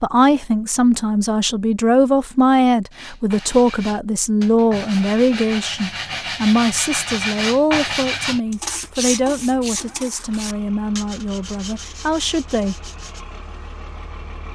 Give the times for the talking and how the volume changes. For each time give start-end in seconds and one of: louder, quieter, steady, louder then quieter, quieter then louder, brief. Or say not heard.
0.0-12.9 quieter.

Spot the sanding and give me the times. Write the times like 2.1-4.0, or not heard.
2.9-13.2.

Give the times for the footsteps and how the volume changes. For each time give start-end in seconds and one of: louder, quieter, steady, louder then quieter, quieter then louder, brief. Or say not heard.
not heard.